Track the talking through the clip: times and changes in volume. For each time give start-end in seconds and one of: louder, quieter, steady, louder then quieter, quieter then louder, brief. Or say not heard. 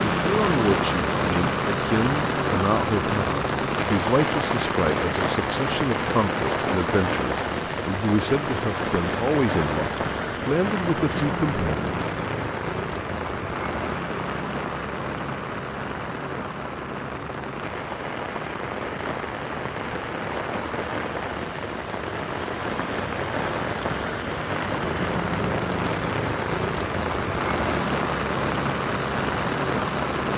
0.2-11.9 steady.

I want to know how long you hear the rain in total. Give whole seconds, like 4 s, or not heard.
30 s.